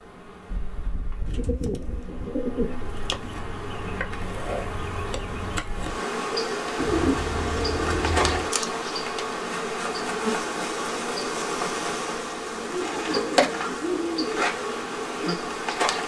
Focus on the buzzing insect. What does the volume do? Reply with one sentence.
The volume of the buzzing insect goes up.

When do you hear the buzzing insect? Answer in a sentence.
You can hear the buzzing insect from 0.0 to 16.0 s.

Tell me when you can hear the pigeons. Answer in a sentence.
You can hear the pigeons from 1.2 to 3.3 s, from 6.8 to 8.5 s and from 12.5 to 14.5 s.